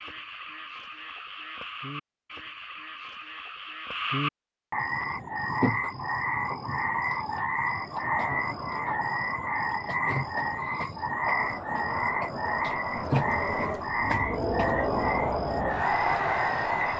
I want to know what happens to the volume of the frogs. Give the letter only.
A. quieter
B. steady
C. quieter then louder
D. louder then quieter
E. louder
E.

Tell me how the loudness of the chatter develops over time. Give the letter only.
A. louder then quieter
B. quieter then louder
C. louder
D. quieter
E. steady
B.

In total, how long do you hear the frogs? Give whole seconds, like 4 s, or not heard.
17 s.